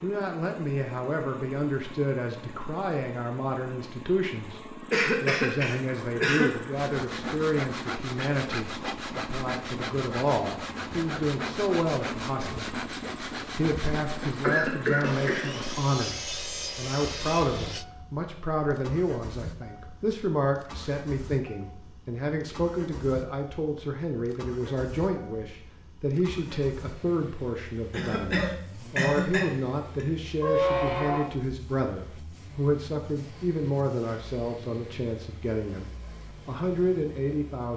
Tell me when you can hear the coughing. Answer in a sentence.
You can hear the coughing from 4.9 to 6.5 s, from 14.4 to 15.4 s and from 27.9 to 30.1 s.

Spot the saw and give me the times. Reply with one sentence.
You can hear the saw from 6.7 to 17.9 s.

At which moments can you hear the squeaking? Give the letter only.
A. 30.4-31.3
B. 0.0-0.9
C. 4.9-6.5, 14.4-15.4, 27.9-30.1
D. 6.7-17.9
A.